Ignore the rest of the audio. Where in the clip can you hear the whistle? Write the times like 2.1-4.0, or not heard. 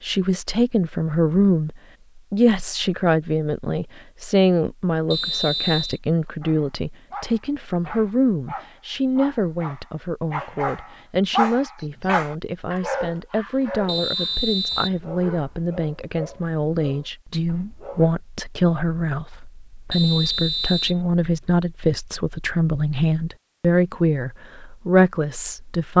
5.1-6.0, 13.8-15.0, 19.9-21.0.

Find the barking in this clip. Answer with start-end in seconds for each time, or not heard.
6.4-18.1.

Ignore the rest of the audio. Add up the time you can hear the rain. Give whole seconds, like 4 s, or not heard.
not heard.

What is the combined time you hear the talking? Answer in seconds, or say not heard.
26 s.